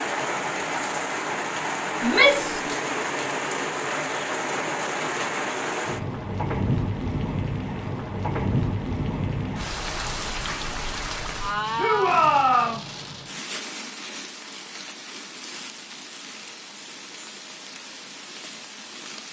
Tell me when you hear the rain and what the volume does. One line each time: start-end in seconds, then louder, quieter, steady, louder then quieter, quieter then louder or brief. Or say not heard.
0.0-19.2 quieter.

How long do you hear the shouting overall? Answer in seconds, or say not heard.
2 s.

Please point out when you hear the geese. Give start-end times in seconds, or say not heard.
not heard.